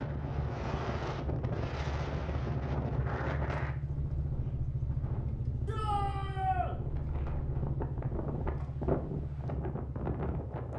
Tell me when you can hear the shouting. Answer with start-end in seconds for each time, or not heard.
5.7-6.8.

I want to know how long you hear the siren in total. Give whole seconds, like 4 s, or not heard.
not heard.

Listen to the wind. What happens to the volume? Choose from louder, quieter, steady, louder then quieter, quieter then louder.
quieter then louder.